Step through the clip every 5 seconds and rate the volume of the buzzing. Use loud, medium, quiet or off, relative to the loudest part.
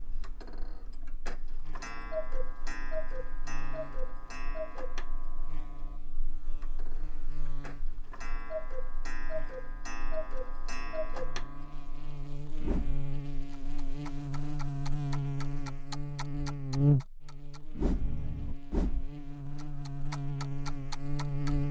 quiet, quiet, medium, loud, loud.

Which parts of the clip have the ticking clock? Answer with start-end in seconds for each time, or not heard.
0.0-21.6.